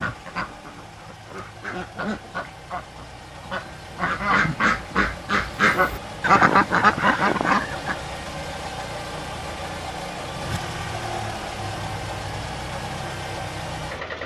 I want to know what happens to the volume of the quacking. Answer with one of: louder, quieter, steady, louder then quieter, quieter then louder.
louder.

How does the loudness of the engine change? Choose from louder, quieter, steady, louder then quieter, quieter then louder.
louder.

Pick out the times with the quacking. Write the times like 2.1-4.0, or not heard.
0.0-8.0.